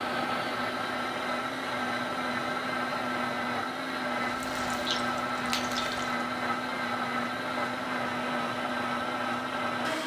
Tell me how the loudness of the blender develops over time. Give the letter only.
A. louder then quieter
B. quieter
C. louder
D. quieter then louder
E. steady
E.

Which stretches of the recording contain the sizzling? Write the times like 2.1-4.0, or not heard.
4.3-6.2.